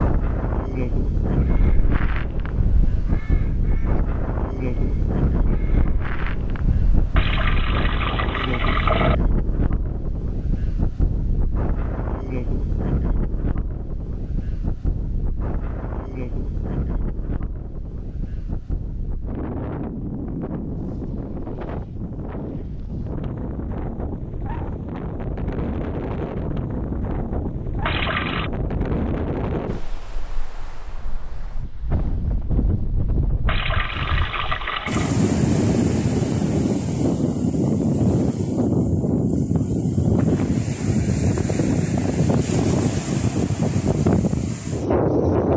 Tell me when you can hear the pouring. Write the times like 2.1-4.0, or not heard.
7.2-9.2, 27.9-28.5, 33.5-35.1.